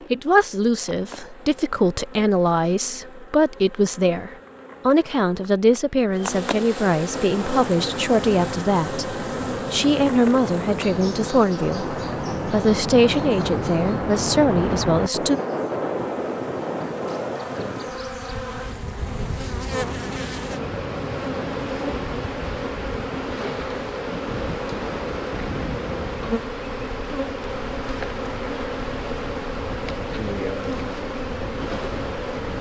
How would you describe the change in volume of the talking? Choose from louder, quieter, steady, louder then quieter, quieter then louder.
steady.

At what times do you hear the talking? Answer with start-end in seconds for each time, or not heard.
0.1-15.4.